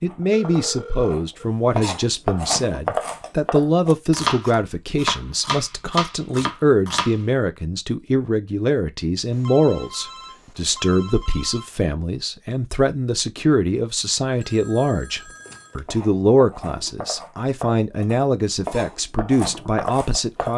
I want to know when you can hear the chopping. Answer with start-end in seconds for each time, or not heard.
0.1-7.2, 15.8-20.5.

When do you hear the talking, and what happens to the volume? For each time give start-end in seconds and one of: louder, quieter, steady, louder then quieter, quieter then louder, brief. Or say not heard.
0.0-20.5 steady.